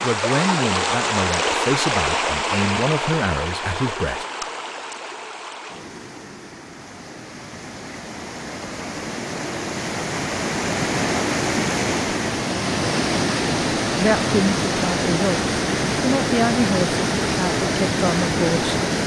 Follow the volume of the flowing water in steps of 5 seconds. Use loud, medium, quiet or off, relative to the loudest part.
loud, medium, loud, loud.